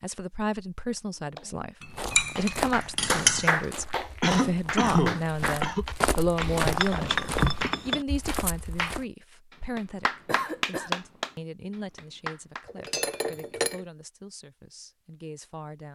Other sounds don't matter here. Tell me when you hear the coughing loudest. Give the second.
5 s.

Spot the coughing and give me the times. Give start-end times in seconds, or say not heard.
4.2-5.8, 10.2-10.9.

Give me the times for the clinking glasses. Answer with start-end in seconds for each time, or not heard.
1.8-3.5, 6.4-8.1, 12.7-13.8.